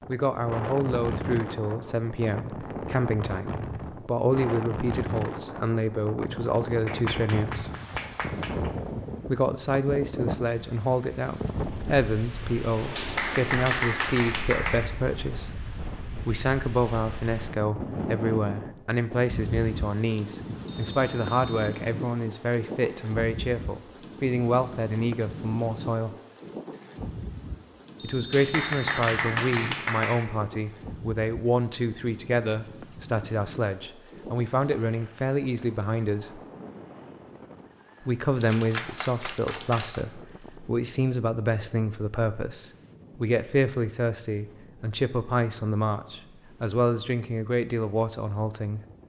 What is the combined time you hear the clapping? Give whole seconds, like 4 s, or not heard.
7 s.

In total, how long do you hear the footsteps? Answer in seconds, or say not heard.
not heard.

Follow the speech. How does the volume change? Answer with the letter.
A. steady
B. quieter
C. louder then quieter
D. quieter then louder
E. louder
A.